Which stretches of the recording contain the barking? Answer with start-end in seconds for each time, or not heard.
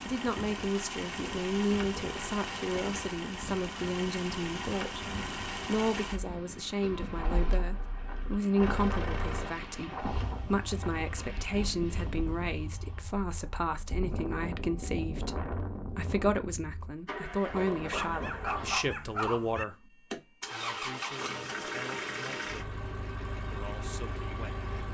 17.9-19.6.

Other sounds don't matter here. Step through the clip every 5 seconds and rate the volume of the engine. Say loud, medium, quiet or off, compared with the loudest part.
loud, loud, medium, loud, loud.